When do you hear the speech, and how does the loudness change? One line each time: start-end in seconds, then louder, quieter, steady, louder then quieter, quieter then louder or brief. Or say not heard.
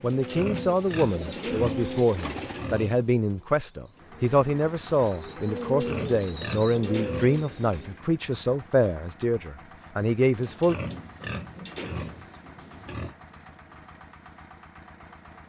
0.0-10.8 steady.